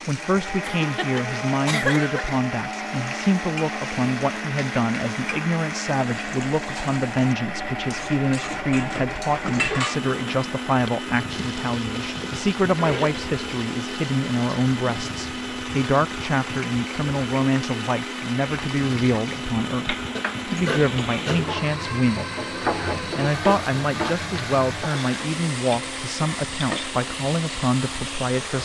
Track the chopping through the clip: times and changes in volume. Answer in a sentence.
You can't hear the chopping here.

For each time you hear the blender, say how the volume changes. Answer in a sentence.
You can hear the blender from 0.0 to 28.6 s, at a steady volume.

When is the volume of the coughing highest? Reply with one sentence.
The loudest moment of the coughing is at 2 seconds.